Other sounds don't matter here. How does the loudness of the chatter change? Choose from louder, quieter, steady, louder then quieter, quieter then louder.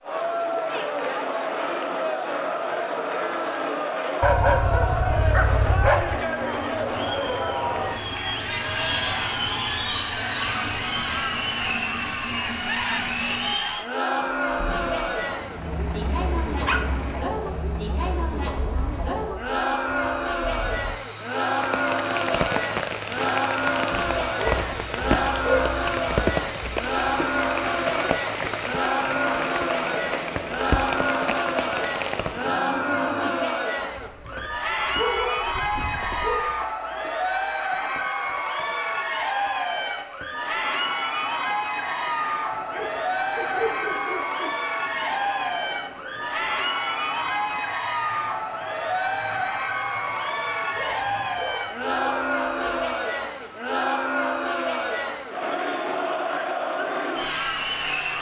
steady.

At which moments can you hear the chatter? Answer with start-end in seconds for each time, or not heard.
0.0-58.1.